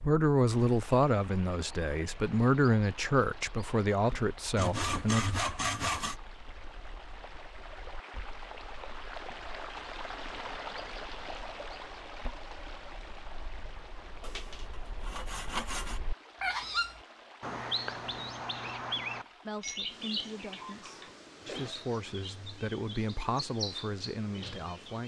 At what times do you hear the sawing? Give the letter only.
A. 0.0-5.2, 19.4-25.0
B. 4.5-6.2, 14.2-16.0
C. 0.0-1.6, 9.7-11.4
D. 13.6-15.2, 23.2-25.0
B.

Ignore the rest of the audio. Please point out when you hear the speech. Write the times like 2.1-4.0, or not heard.
0.0-5.2, 19.4-25.0.